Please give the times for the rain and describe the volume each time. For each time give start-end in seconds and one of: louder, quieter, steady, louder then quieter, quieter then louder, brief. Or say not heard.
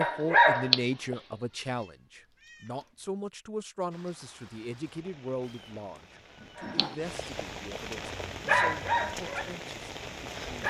3.9-10.6 louder.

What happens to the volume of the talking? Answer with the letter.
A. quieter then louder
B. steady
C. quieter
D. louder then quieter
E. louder
C.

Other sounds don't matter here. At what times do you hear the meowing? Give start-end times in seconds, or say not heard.
1.6-3.1, 5.4-7.0.